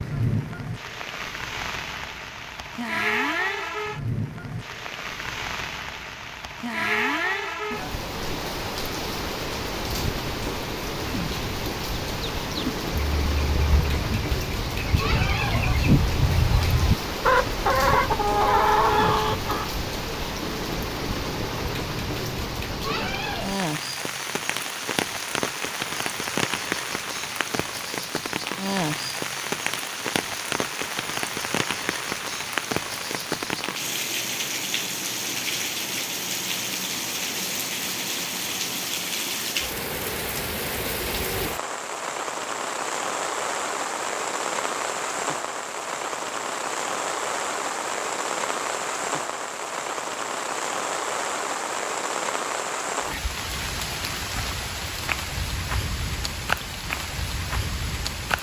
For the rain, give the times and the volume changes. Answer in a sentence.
The rain can be heard from 0.0 to 58.3 s, at a steady volume.